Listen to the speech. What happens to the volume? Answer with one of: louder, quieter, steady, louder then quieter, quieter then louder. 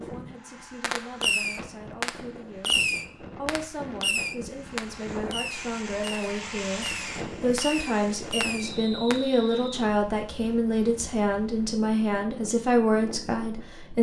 louder.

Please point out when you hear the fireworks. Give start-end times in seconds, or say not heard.
0.8-9.2.